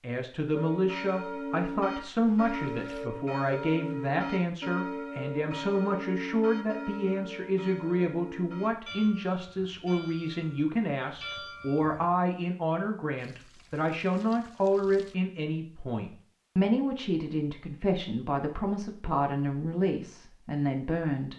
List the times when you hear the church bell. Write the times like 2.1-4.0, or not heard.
0.5-12.2.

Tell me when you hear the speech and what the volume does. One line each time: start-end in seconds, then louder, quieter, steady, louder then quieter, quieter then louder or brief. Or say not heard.
0.0-21.3 steady.